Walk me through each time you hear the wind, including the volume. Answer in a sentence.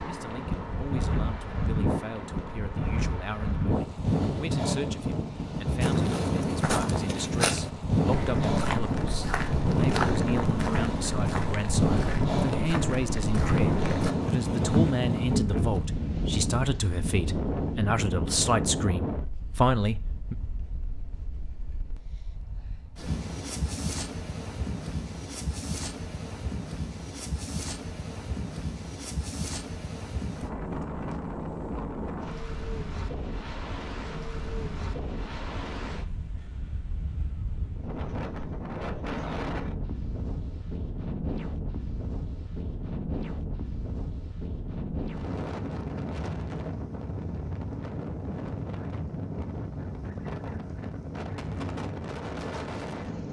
You can hear the wind from 0.0 to 53.2 s, getting quieter.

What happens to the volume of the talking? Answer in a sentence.
The loudness of the talking goes up.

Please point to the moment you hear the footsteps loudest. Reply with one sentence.
The volume of the footsteps peaks at 15 seconds.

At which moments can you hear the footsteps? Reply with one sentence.
The footsteps can be heard from 5.8 to 15.8 s.